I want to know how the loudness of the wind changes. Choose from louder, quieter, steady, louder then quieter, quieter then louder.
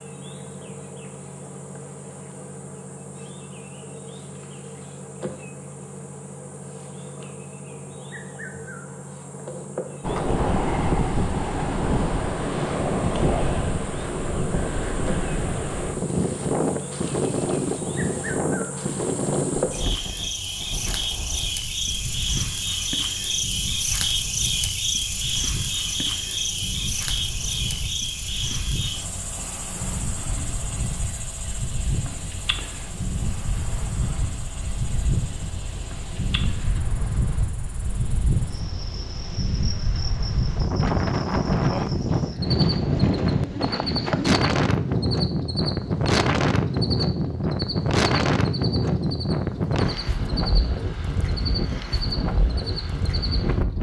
quieter then louder.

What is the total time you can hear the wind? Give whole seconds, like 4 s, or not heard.
44 s.